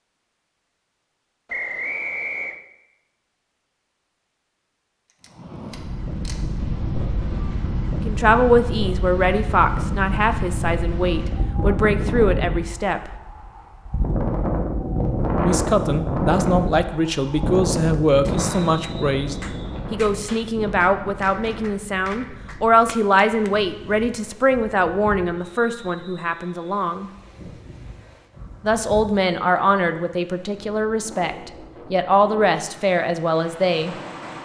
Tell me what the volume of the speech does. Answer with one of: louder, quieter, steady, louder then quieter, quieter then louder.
steady.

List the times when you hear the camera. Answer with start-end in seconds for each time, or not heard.
5.0-6.5.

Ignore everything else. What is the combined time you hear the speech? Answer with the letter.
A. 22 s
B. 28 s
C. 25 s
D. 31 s
A.